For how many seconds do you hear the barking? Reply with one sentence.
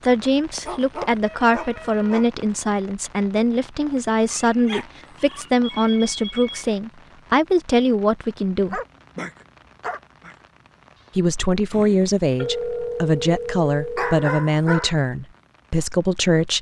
You can hear the barking for 6 seconds altogether.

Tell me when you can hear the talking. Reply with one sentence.
The talking can be heard from 0.0 to 8.8 s and from 11.2 to 16.5 s.